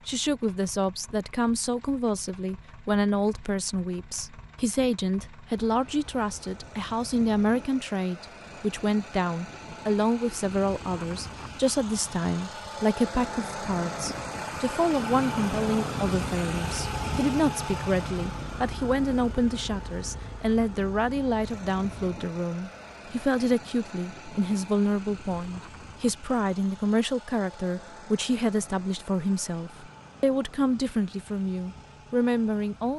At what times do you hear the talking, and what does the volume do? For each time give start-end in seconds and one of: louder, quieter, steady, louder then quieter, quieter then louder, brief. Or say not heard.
0.1-32.9 steady.